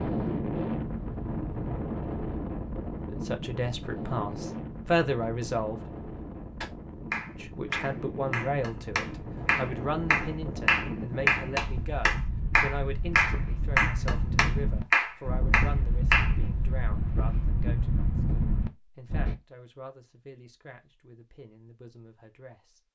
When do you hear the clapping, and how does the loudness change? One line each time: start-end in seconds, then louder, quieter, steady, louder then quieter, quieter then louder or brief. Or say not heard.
6.6-16.3 louder.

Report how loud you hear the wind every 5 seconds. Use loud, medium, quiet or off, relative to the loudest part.
loud, medium, loud, loud, off.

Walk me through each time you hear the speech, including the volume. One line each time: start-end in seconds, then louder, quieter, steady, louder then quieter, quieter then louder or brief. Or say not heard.
3.0-5.8 brief
7.4-22.8 quieter.